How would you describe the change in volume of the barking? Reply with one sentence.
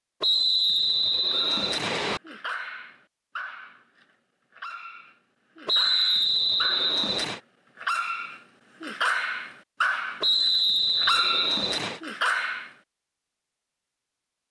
The loudness of the barking goes up.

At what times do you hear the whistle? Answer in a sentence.
The whistle can be heard from 0.2 to 2.2 s, from 5.7 to 7.4 s and from 10.2 to 12.0 s.